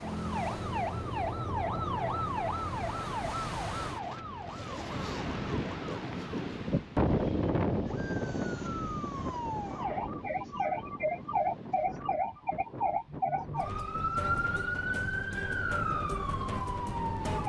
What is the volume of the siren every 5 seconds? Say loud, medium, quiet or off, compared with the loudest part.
loud, medium, loud, loud.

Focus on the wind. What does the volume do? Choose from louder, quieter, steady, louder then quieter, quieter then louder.
louder then quieter.